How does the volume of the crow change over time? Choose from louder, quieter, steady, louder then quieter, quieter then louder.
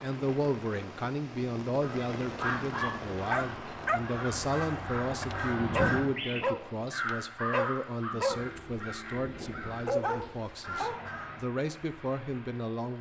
louder then quieter.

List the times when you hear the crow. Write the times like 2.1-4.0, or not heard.
1.8-11.4.